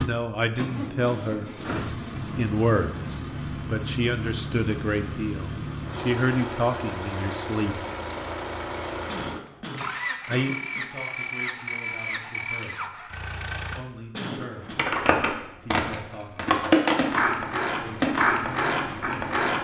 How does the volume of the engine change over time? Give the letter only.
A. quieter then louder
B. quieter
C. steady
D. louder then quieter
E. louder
C.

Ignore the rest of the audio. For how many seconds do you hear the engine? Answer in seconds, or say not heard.
14 s.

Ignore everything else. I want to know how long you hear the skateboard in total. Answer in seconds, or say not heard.
5 s.